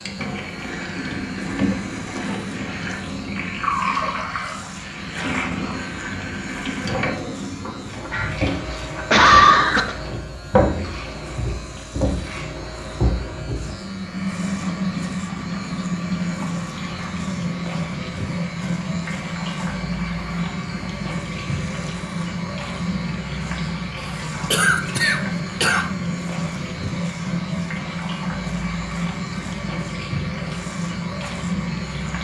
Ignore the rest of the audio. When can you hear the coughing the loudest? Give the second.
9 s.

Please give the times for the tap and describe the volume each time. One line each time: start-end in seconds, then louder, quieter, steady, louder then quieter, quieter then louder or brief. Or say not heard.
0.0-32.1 steady.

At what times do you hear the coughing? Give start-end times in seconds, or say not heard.
8.9-9.9, 24.5-25.9.